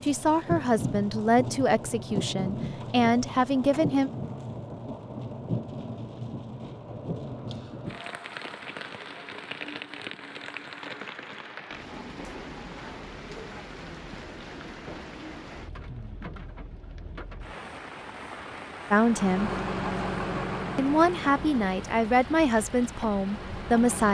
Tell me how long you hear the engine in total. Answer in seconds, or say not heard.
5 s.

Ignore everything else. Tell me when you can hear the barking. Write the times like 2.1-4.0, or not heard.
not heard.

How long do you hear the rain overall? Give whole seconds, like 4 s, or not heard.
24 s.